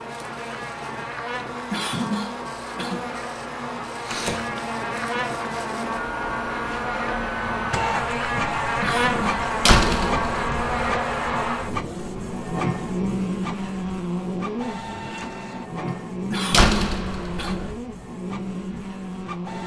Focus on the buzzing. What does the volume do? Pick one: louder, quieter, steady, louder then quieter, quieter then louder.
louder then quieter.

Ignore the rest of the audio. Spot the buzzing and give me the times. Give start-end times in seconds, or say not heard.
0.0-19.6.